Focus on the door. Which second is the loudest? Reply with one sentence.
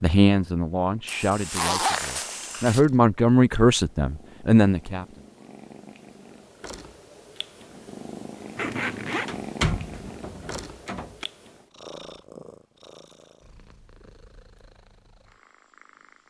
The volume of the door peaks at 10 seconds.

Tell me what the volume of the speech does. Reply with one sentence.
The volume of the speech goes up.